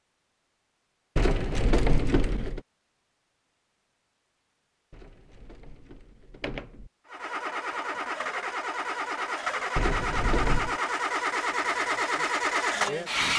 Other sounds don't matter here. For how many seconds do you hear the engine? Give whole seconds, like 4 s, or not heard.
6 s.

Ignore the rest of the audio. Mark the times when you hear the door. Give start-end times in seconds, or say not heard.
1.1-2.6, 4.9-6.9, 9.8-10.8.